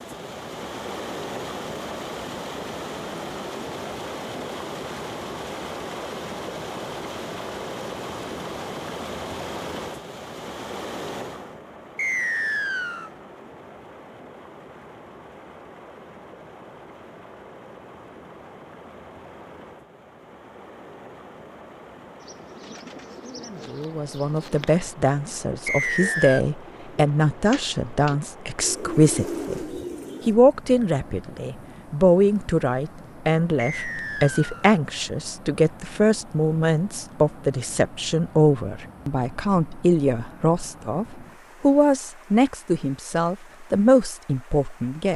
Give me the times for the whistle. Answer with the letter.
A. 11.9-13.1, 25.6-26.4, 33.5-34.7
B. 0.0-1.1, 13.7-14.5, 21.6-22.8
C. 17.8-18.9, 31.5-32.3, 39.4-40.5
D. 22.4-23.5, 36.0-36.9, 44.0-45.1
A.